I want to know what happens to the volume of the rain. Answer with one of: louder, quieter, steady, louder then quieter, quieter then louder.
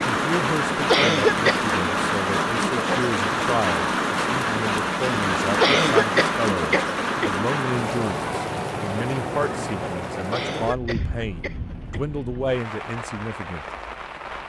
quieter.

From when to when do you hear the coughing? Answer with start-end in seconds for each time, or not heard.
0.8-1.6, 5.6-7.5, 10.3-12.2.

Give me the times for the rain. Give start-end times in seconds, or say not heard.
0.0-14.4.